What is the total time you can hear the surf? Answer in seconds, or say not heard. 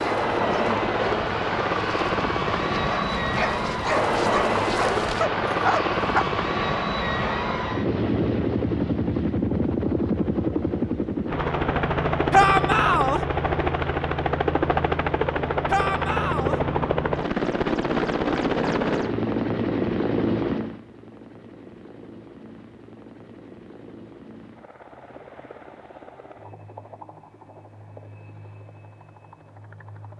not heard.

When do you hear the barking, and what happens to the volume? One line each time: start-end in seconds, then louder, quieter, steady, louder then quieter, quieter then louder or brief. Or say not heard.
0.0-6.2 louder.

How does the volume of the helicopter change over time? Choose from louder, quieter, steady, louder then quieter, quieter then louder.
quieter.